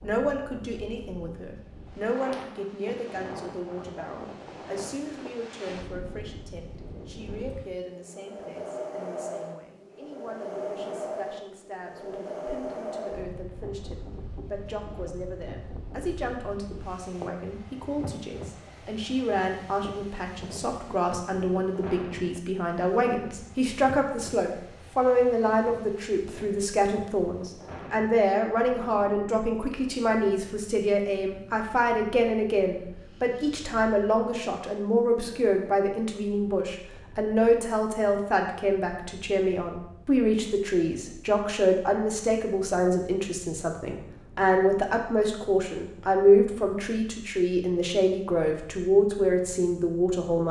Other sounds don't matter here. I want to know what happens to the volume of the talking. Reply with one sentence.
The volume of the talking goes up.